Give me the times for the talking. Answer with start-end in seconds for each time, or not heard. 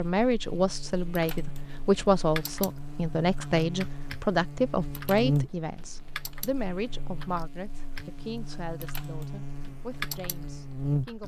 0.0-11.2.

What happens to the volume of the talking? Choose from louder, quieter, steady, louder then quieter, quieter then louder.
quieter.